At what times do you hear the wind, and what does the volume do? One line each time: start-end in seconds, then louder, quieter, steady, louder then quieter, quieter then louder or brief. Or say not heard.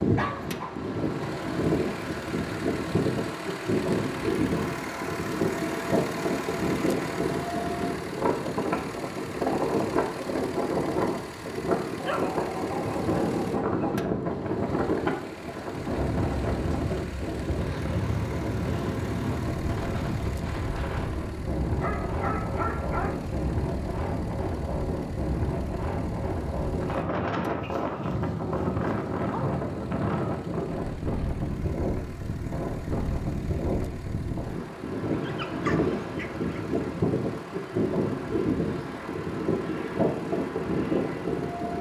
0.0-41.7 steady.